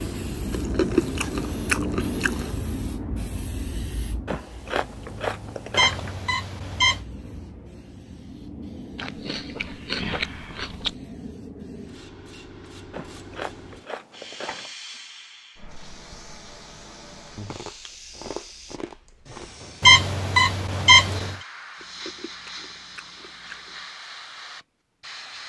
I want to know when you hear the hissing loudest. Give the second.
2 s.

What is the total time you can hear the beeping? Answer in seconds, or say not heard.
3 s.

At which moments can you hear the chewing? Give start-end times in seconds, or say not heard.
0.5-2.6, 4.2-6.2, 8.9-10.9, 12.9-14.7, 17.4-19.6, 21.8-23.9.